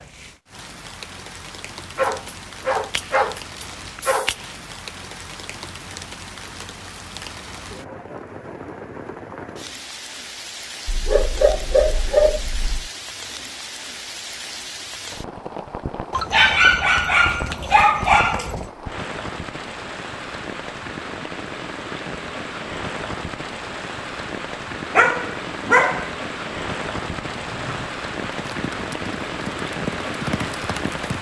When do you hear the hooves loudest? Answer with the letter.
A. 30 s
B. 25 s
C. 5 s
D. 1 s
A.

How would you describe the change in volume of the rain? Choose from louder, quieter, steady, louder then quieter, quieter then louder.
louder.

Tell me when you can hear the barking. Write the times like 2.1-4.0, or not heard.
1.9-4.4, 10.8-12.9, 16.1-18.7, 24.9-26.1.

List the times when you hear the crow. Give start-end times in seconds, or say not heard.
not heard.